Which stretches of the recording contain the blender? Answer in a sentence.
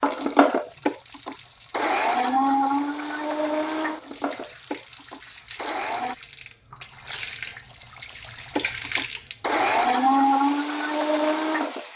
The blender can be heard from 0.0 to 6.2 s and from 8.6 to 11.8 s.